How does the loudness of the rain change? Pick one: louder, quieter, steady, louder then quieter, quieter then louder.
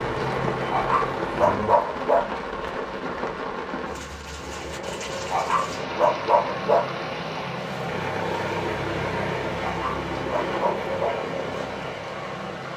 quieter.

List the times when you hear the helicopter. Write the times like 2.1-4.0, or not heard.
0.0-1.6, 4.4-12.7.